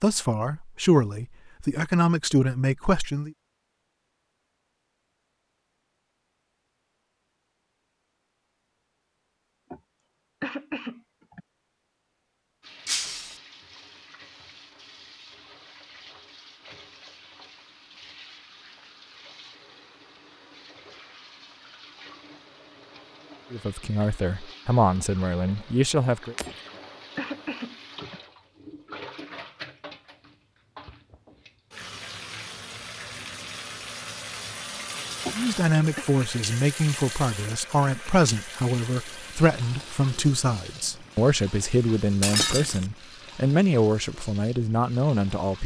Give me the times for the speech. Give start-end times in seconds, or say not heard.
0.0-3.3, 23.5-26.4, 35.4-45.6.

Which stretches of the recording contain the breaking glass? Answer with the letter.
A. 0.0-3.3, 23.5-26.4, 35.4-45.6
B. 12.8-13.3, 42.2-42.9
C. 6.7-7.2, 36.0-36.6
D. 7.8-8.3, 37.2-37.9
B.